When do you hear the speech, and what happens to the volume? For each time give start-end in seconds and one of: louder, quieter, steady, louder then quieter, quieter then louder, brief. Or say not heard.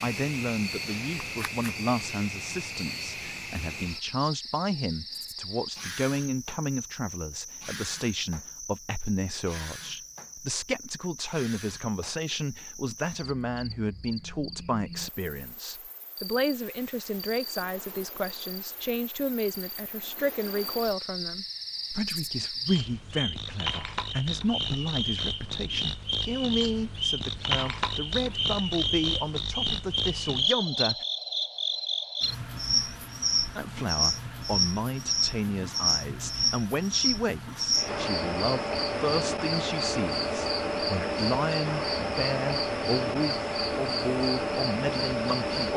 0.0-31.1 steady
33.5-45.7 steady.